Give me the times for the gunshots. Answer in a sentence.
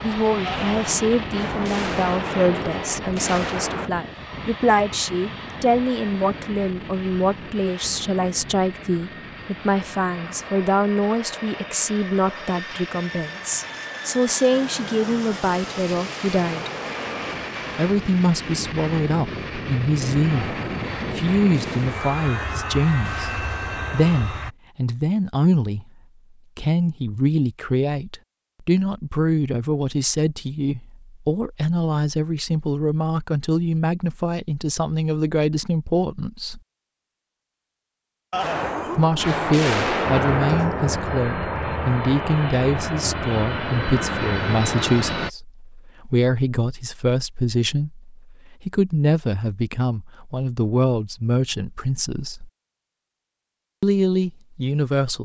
You can hear the gunshots from 0.5 to 3.9 s, from 20.3 to 24.4 s and from 38.3 to 41.0 s.